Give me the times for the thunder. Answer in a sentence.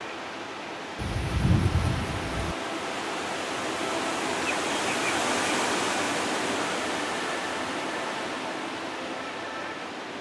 The thunder can be heard from 0.9 to 2.5 s.